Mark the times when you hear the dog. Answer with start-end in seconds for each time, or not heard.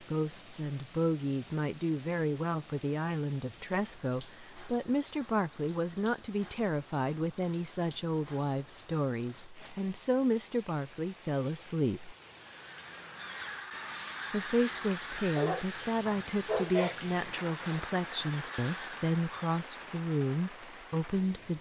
15.3-17.1.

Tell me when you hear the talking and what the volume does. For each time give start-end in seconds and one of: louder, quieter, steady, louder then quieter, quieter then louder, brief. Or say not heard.
0.1-12.2 steady
14.3-21.5 steady.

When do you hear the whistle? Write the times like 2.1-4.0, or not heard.
not heard.